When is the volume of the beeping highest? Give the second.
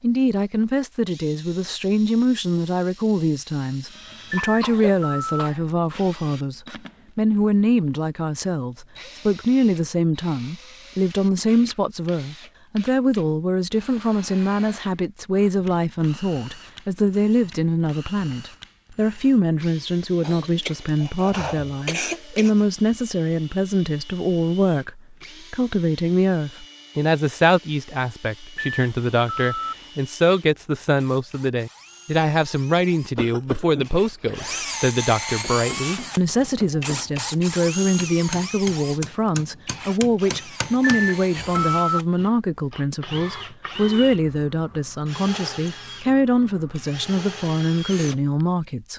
42 s.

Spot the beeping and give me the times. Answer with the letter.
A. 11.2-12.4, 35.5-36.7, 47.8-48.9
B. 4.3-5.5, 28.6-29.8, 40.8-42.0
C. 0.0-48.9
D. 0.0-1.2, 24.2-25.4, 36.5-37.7
B.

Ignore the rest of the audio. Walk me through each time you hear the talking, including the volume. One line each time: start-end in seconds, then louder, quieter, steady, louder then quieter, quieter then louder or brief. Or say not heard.
0.0-48.9 steady.